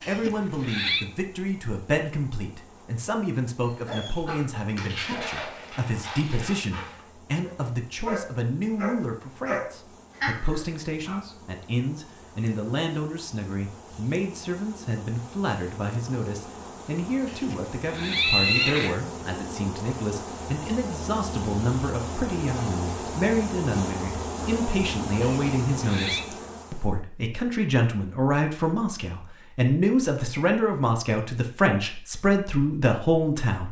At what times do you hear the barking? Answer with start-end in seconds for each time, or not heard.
3.6-11.2.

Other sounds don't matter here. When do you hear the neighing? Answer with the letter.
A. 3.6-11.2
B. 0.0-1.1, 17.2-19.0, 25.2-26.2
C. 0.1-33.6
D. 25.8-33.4
B.